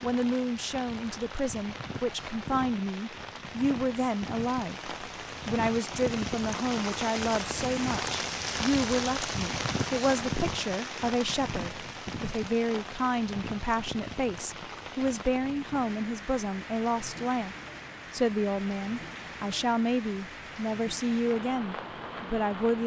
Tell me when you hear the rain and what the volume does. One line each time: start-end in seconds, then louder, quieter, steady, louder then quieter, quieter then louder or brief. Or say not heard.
0.0-22.8 louder then quieter.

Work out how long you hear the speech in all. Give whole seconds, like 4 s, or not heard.
23 s.